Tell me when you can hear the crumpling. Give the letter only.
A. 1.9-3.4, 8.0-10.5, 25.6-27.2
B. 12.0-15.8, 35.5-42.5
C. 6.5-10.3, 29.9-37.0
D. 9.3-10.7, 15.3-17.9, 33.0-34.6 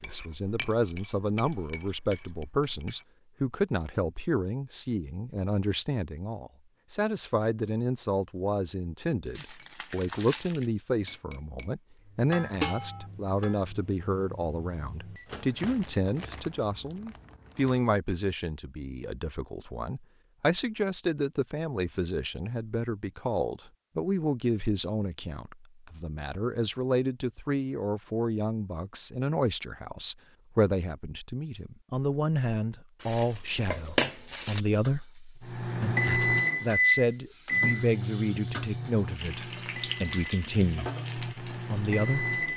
D.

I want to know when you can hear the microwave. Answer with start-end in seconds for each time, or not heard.
12.0-15.8, 35.5-42.5.